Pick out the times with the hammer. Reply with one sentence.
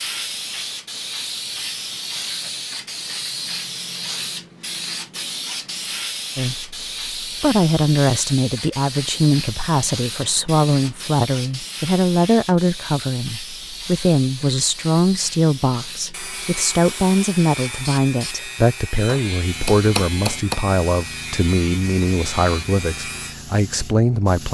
You can hear the hammer from 19.1 to 20.6 s.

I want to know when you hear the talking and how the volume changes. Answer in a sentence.
The talking can be heard from 6.3 to 24.4 s, at a steady volume.